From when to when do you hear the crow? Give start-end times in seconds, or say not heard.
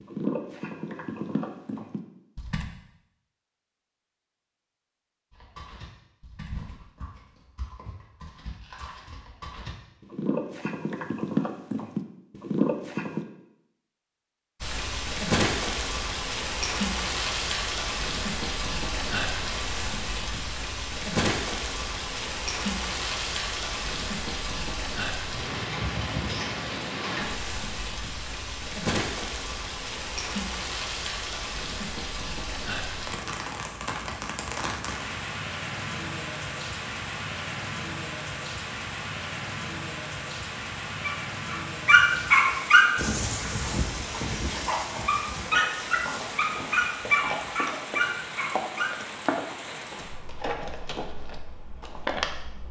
not heard.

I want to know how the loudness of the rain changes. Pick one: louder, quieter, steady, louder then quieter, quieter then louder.
quieter.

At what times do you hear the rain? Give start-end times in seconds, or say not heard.
14.6-52.6.